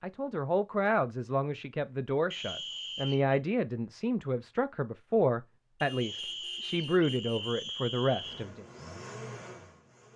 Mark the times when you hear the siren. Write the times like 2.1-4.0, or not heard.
not heard.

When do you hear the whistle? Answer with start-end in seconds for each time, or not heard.
2.3-3.4, 6.0-8.4.